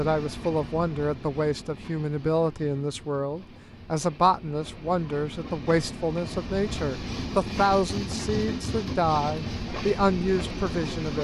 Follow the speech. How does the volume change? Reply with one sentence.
The loudness of the speech stays about the same.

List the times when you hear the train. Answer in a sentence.
The train can be heard from 0.0 to 11.1 s.